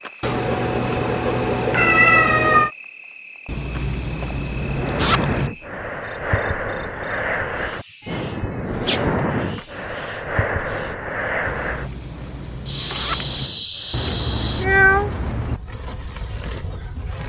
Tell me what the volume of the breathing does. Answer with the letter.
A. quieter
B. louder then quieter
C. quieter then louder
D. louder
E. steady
A.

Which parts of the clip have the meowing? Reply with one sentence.
The meowing can be heard from 0.2 to 2.7 s, from 8.0 to 9.4 s and from 13.9 to 15.6 s.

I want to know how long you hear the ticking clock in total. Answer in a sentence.
The ticking clock can't be heard in this clip.